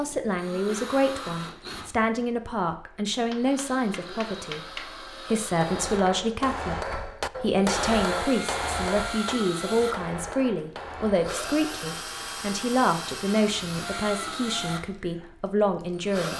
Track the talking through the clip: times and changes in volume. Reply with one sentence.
The talking can be heard from 0.0 to 16.3 s, at a steady volume.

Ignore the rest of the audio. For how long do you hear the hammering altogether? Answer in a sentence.
You can hear the hammering for 8 seconds altogether.